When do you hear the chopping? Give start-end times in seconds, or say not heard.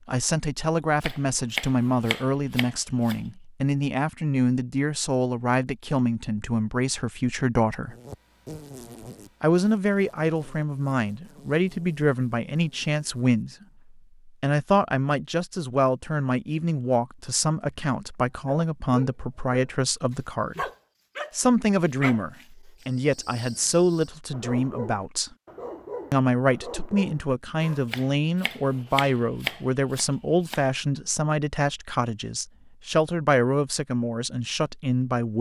1.0-3.2, 27.9-30.6.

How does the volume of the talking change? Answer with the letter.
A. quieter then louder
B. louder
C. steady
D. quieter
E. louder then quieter
C.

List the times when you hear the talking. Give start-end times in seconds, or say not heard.
0.1-8.0, 9.4-13.6, 14.2-20.6, 21.4-25.3, 26.1-35.3.